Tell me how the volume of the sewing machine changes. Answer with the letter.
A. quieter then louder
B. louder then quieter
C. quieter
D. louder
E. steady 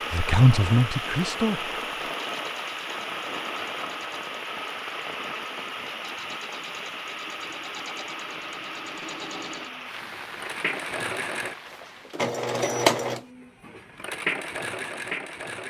D.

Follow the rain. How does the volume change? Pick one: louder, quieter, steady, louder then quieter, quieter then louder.
quieter.